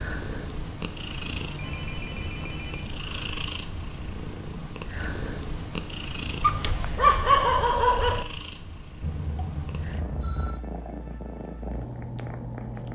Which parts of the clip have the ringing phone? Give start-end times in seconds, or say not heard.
1.6-2.9, 9.0-10.7.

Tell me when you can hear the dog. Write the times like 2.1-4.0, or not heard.
6.4-8.2.